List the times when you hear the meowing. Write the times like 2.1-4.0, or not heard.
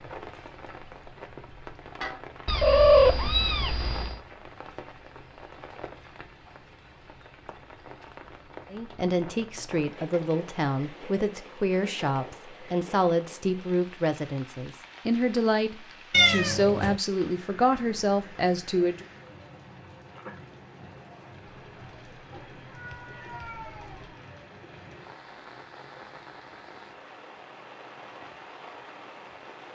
2.5-4.2, 16.1-17.0, 21.5-24.2.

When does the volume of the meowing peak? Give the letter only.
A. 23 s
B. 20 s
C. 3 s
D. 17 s
C.